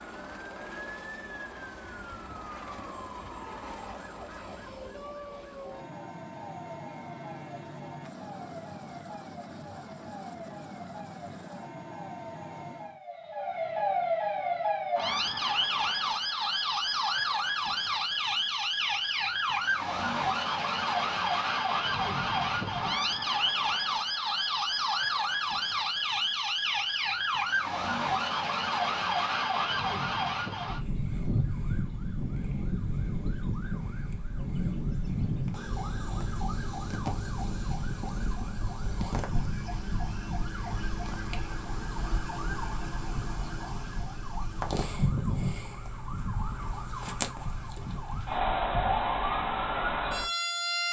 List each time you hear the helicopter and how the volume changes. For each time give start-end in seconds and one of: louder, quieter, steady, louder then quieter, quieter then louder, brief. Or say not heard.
0.0-13.0 steady.